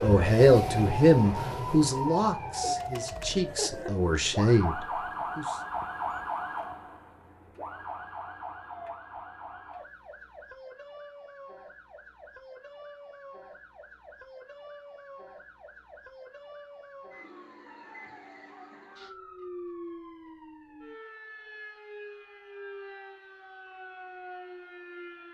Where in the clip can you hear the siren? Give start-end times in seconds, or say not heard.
0.0-25.2.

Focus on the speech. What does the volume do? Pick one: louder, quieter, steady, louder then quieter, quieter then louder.
quieter then louder.